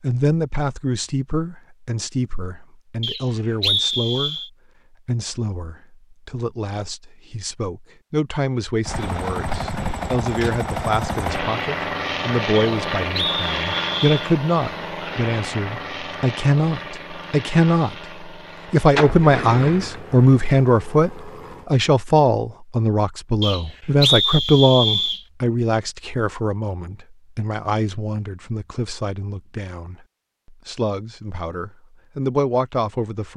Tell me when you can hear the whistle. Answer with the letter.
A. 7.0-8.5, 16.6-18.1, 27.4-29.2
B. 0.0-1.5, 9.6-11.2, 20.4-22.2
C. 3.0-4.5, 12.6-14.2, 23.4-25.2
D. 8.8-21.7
C.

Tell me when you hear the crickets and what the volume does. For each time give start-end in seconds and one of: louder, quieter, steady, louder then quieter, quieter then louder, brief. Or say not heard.
not heard.